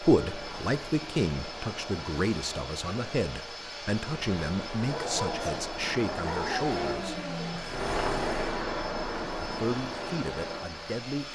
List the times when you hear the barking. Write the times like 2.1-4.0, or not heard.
4.8-8.6.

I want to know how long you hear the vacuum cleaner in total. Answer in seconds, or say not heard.
11 s.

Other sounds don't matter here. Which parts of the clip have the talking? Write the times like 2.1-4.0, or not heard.
0.0-7.2, 9.2-11.3.